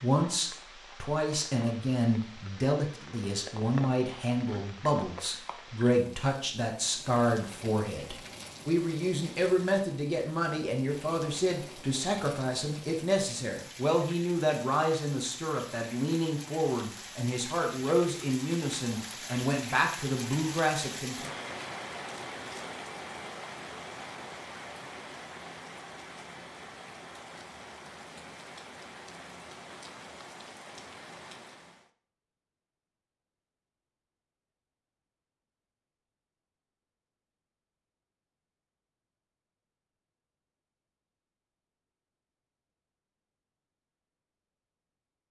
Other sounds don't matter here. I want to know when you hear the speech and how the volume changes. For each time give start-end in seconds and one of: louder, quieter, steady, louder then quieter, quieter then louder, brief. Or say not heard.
0.0-21.3 steady.